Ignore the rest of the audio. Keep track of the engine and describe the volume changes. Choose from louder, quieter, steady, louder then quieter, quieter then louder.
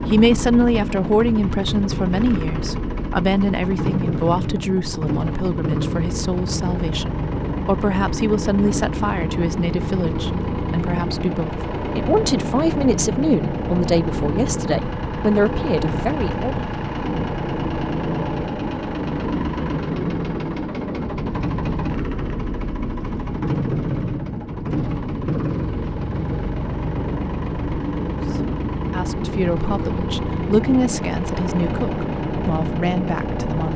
steady.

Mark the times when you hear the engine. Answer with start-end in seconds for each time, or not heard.
0.0-33.7.